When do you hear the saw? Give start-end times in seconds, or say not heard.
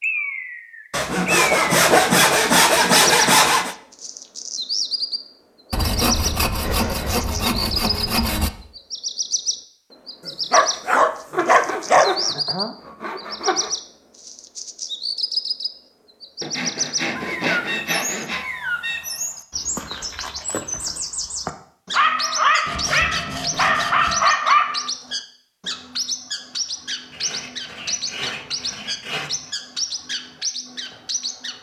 0.9-3.8, 5.7-8.5, 11.3-13.8, 16.4-18.4, 22.6-24.3, 27.1-29.5.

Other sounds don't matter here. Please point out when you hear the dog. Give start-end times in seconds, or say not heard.
10.5-12.1, 21.9-24.9.